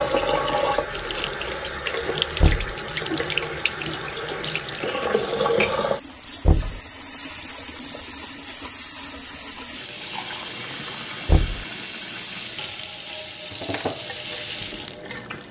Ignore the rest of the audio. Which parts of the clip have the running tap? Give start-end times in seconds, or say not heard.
0.0-15.4.